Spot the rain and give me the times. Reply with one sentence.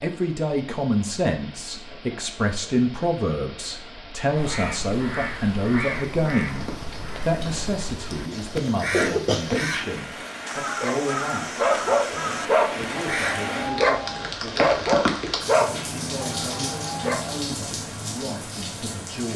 You can hear the rain from 0.0 to 19.3 s.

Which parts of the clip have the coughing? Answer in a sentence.
The coughing can be heard from 8.3 to 9.8 s.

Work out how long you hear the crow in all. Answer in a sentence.
You can hear the crow for 9 seconds altogether.